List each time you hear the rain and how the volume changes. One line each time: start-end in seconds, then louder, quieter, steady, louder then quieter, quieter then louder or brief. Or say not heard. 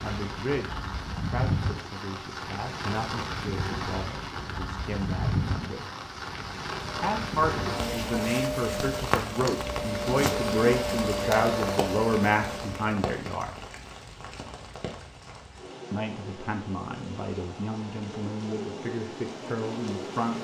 0.0-20.3 quieter.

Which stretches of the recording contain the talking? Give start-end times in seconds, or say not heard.
0.0-5.9, 7.0-13.5, 15.9-20.3.